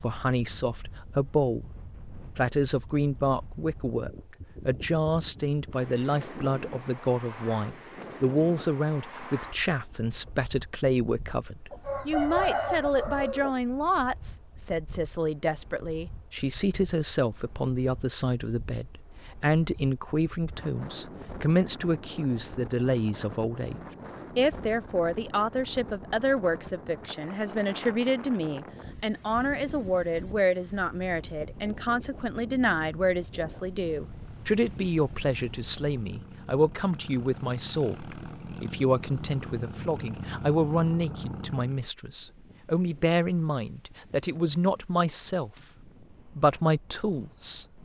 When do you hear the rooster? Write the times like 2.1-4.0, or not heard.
11.7-13.6.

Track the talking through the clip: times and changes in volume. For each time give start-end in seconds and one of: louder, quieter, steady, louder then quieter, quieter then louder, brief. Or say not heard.
0.0-1.7 brief
2.4-47.8 steady.